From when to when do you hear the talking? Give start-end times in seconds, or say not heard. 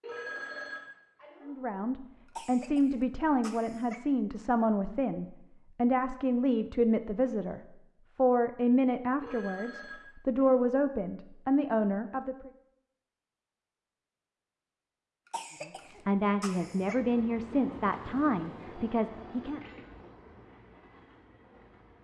1.4-12.5, 15.6-19.6.